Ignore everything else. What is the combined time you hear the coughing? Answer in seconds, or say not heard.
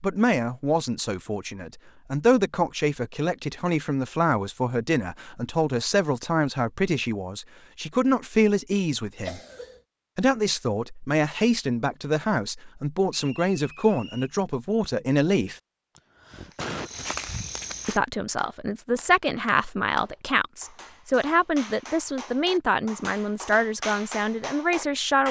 2 s.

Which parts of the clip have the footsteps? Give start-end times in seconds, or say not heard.
16.3-18.0.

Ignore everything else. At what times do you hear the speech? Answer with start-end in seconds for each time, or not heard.
0.0-9.4, 10.2-15.6, 17.9-25.2.